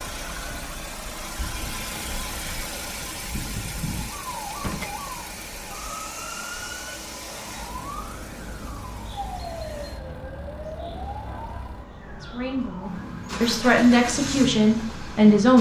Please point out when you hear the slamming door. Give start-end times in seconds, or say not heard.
4.5-5.0.